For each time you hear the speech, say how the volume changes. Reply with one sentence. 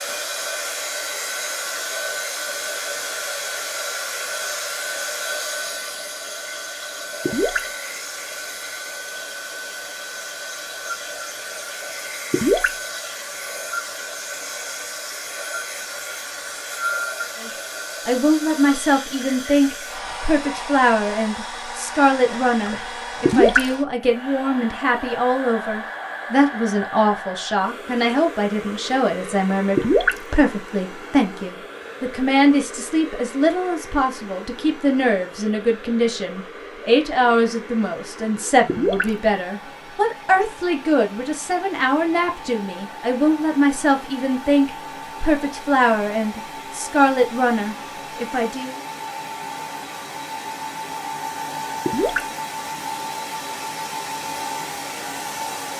The speech can be heard from 17.4 to 48.8 s, at a steady volume.